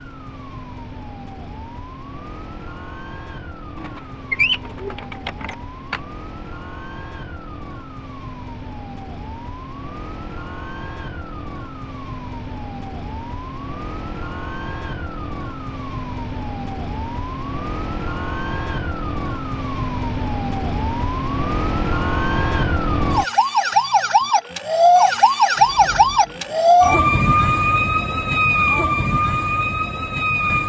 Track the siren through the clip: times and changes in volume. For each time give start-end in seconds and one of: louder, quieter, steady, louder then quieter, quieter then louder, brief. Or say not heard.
0.0-30.6 louder.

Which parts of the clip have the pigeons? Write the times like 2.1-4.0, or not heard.
3.8-6.0, 25.6-26.9.